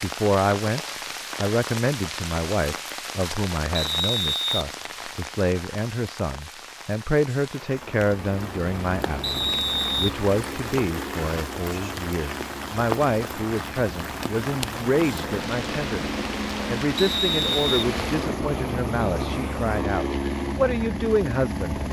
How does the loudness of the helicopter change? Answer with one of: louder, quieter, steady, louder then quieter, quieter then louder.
louder.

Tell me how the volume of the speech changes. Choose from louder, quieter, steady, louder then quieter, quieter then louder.
steady.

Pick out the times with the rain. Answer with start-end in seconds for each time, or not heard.
0.0-18.4.